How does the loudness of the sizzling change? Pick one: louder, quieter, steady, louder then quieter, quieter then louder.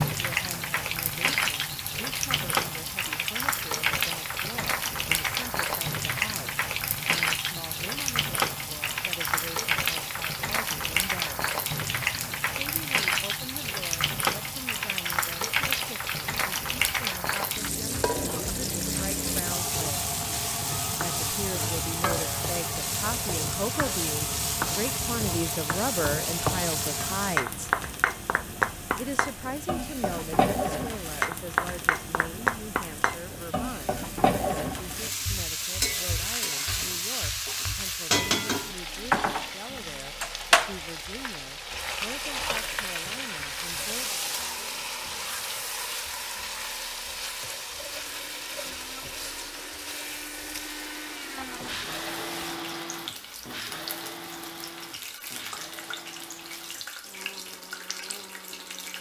quieter.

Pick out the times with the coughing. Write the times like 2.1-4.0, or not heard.
not heard.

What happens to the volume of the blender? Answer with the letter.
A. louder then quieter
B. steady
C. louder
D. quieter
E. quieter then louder
A.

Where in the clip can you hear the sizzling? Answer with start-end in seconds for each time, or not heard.
0.0-58.9.